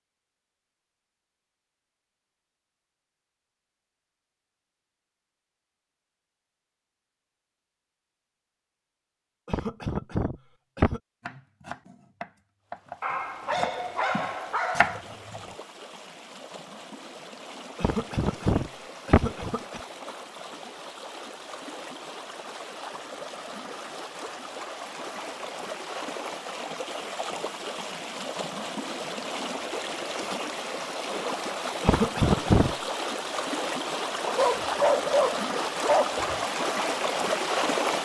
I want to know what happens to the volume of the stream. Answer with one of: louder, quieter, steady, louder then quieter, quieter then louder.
louder.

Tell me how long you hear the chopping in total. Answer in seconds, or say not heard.
4 s.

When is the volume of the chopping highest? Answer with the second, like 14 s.
15 s.